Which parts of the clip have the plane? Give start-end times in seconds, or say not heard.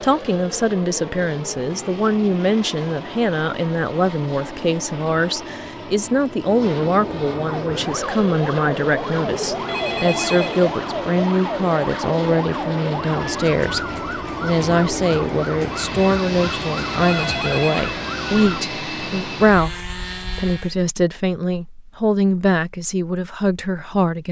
0.0-20.8.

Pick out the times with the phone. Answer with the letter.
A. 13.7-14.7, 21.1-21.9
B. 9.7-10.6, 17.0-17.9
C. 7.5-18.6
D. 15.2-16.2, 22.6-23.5
B.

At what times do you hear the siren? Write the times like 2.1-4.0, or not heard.
7.5-18.6.